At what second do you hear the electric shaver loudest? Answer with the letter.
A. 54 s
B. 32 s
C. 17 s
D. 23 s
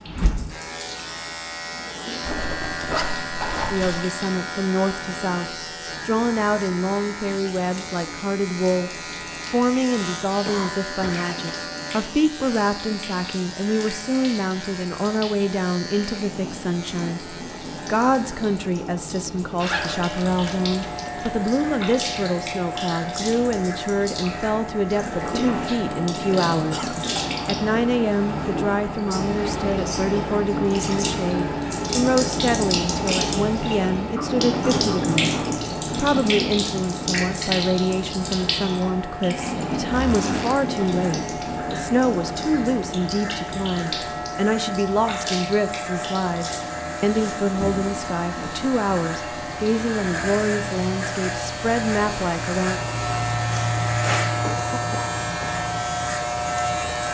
A.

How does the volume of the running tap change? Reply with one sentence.
The loudness of the running tap goes up, then down.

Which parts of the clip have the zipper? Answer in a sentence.
You can hear the zipper from 2.2 to 4.0 s, from 19.6 to 21.4 s and from 39.9 to 40.5 s.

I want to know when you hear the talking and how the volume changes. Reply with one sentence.
The talking can be heard from 3.7 to 52.8 s, at a steady volume.